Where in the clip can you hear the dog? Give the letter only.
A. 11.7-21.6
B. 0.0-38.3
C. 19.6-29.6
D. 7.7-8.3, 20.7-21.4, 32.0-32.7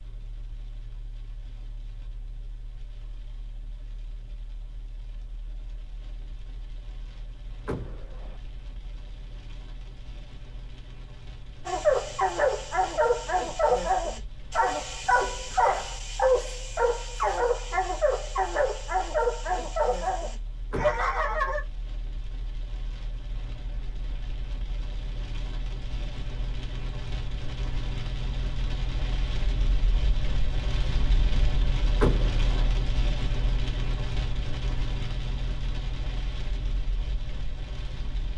A.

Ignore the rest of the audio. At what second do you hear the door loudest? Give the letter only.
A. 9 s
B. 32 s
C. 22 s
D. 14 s
B.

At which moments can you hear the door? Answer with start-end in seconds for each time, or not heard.
7.7-8.3, 20.7-21.4, 32.0-32.7.